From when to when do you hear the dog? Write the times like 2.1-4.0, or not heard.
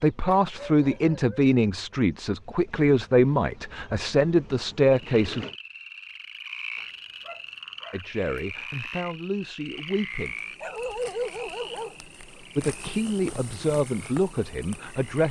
0.2-1.5, 6.8-8.6, 10.6-12.4.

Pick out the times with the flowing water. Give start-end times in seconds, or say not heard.
not heard.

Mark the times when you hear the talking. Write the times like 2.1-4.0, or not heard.
0.0-5.5, 7.9-10.3, 12.6-15.2.